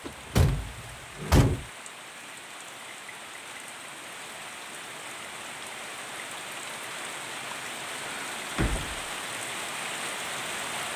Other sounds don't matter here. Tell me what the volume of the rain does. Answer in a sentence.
The volume of the rain goes up.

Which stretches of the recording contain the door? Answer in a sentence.
The door can be heard from 0.1 to 1.6 s and from 8.1 to 9.0 s.